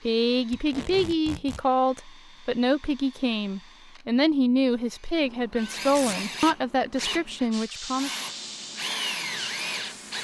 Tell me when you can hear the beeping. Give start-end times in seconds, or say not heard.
not heard.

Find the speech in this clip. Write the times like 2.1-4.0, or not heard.
0.0-8.1.